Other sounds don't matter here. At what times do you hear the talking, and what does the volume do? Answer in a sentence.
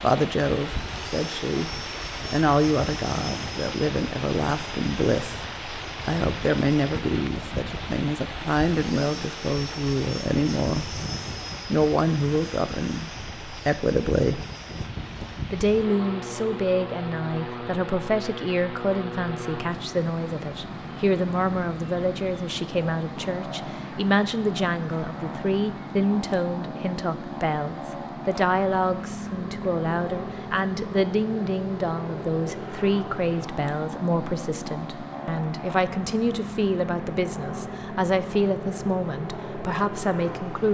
You can hear the talking from 0.0 to 11.0 s, at a steady volume; briefly from 11.7 to 14.4 s; and from 15.5 to 40.6 s, at a steady volume.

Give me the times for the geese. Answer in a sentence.
You can't hear the geese here.